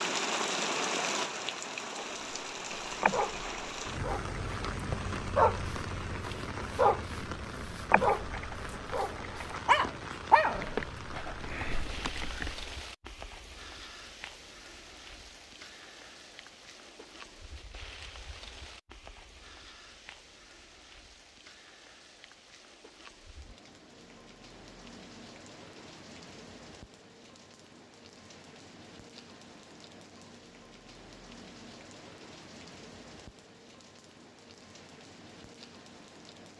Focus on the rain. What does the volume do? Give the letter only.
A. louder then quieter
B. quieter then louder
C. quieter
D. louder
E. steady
C.